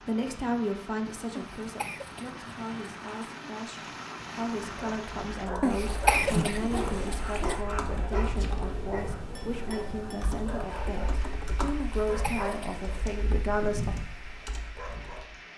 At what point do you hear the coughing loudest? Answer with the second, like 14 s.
6 s.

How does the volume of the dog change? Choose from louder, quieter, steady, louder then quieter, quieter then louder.
quieter.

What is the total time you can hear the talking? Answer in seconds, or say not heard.
14 s.